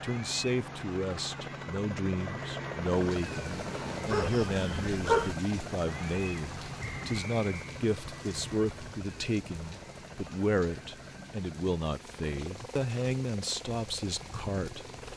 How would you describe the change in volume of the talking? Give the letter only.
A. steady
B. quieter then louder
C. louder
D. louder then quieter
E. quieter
A.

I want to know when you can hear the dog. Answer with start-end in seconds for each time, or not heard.
4.0-5.3.